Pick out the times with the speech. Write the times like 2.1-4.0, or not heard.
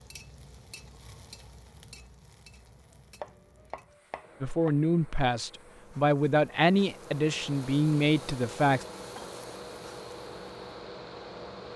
4.4-8.8.